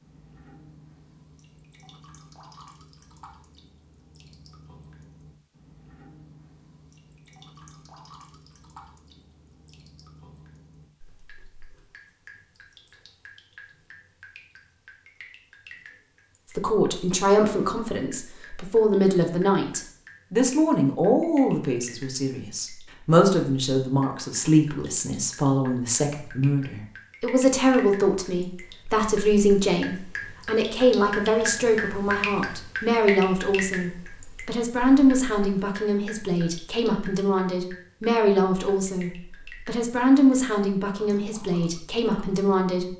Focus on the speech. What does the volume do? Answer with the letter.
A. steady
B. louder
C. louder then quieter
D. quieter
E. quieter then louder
A.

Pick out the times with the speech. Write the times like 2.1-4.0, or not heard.
16.6-42.9.